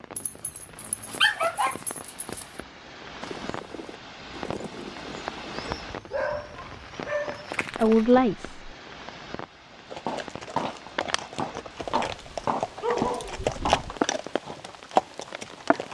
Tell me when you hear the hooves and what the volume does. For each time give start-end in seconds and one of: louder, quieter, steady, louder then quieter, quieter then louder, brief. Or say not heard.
3.2-5.8 brief
9.9-15.9 louder.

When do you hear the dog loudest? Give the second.
1 s.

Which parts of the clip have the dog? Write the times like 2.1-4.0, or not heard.
0.1-2.5, 5.5-8.1, 12.1-14.0.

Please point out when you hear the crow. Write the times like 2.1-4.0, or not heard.
not heard.